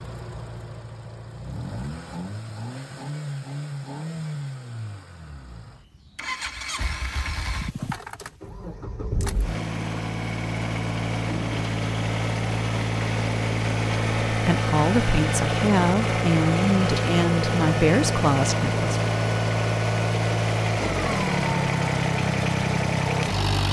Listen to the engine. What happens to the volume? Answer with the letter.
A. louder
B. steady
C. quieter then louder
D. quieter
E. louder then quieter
A.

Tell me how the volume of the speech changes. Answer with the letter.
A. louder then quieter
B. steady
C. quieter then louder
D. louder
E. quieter
B.